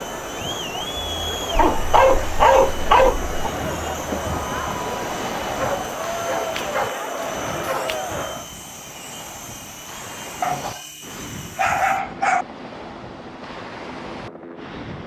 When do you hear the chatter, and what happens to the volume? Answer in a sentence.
You can hear the chatter from 0.0 to 8.5 s, at a steady volume.